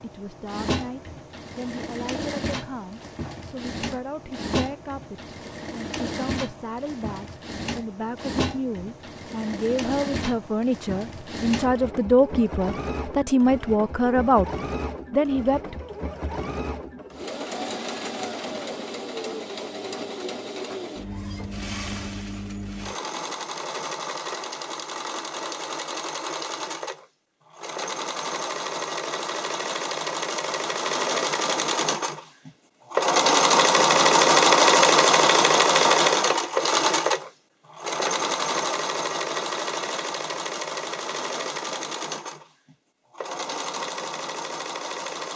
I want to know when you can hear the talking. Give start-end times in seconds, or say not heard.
0.0-14.5, 15.1-15.8.